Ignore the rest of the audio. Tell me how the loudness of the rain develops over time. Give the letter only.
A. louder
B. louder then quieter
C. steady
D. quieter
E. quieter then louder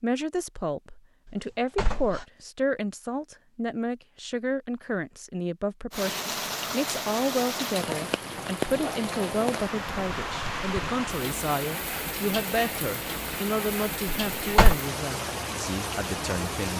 C.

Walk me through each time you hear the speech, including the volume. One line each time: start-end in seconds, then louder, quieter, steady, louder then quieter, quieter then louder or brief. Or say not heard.
0.0-16.7 steady.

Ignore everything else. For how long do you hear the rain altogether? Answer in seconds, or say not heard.
11 s.